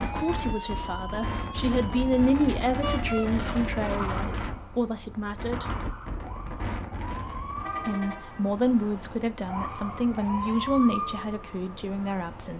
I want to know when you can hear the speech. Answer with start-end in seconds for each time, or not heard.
0.0-5.7, 7.8-12.5.